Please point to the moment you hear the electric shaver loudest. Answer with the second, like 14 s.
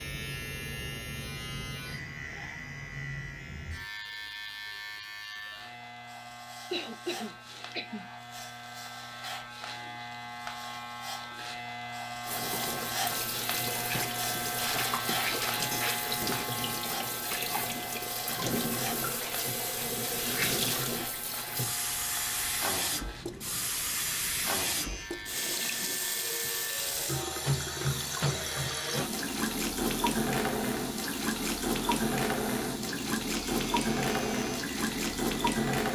15 s.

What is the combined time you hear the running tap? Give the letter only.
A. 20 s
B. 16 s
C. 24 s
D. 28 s
C.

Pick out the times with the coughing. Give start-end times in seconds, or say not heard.
6.7-8.1.